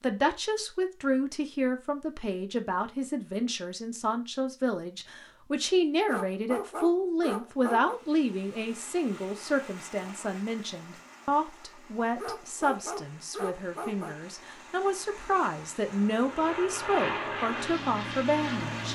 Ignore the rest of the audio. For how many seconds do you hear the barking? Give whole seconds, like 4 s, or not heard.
4 s.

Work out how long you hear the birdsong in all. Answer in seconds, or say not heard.
not heard.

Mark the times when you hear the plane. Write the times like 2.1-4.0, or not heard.
15.8-18.9.